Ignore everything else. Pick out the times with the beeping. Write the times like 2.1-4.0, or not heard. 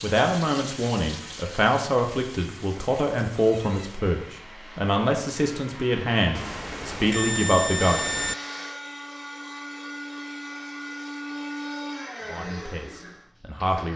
6.3-8.3.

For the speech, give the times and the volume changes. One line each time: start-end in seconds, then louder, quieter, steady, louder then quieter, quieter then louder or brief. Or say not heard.
0.0-8.0 steady
12.2-13.9 brief.